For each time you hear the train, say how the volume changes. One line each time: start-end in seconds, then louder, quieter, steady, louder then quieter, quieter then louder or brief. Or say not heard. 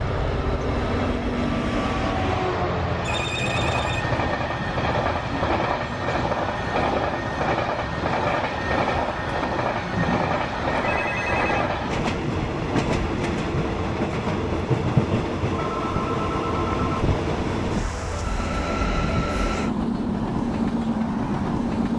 0.0-21.9 steady.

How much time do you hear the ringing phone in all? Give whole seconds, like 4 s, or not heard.
3 s.